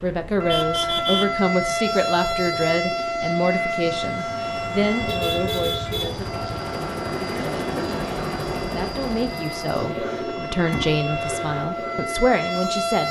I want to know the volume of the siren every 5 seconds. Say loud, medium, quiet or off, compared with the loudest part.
loud, medium, loud.